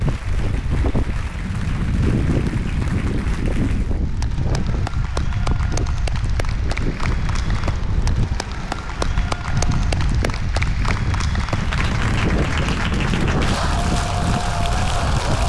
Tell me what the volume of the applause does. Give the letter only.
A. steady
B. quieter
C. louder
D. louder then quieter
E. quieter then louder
C.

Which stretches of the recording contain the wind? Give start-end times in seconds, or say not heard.
0.0-15.4.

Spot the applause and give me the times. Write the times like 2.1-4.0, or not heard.
0.0-15.4.